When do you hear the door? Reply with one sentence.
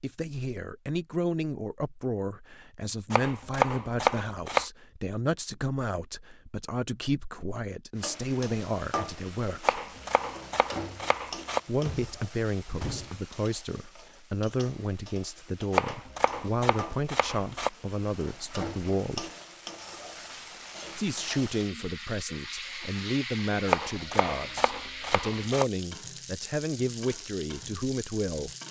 You can hear the door from 11.8 to 13.2 s.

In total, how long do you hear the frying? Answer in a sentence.
You can hear the frying for 21 seconds altogether.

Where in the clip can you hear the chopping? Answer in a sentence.
You can hear the chopping from 3.1 to 4.7 s, from 9.6 to 11.6 s, from 15.7 to 17.7 s and from 23.6 to 25.6 s.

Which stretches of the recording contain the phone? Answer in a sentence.
You can't hear the phone here.